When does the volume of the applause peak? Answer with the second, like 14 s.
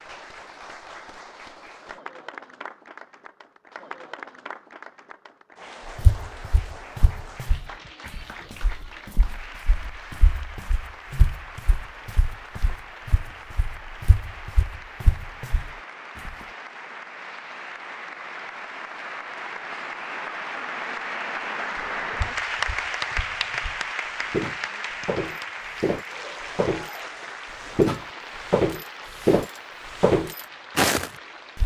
23 s.